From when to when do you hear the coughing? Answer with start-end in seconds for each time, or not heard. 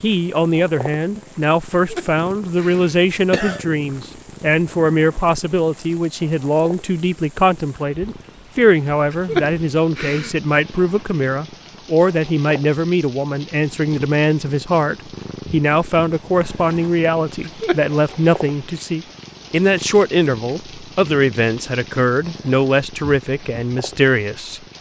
1.9-3.6, 9.1-10.3, 17.4-17.9.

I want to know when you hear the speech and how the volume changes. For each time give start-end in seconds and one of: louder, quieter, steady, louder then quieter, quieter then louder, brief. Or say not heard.
0.0-24.6 steady.